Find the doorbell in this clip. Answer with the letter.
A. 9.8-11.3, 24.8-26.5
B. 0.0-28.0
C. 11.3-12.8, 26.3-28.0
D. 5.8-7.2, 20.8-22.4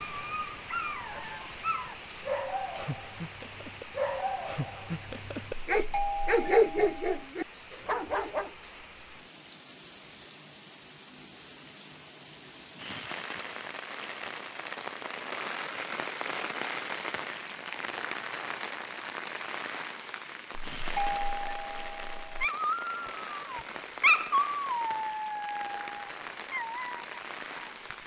D.